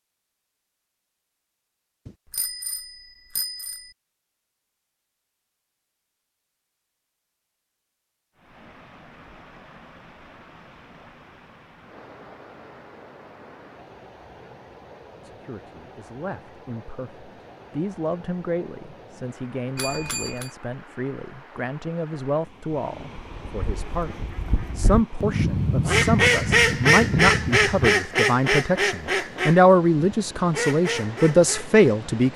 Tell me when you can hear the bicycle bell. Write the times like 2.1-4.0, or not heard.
2.0-4.0, 19.8-20.5.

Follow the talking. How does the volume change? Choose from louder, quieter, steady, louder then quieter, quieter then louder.
louder.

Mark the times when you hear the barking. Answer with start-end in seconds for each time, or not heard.
not heard.